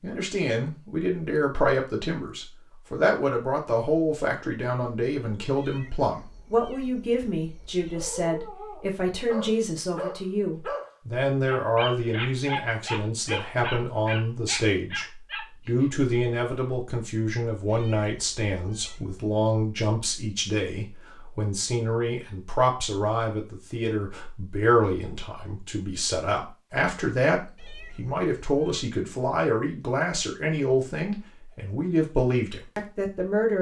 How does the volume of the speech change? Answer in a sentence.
The loudness of the speech stays about the same.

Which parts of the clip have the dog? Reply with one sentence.
The dog can be heard from 7.9 to 16.1 s.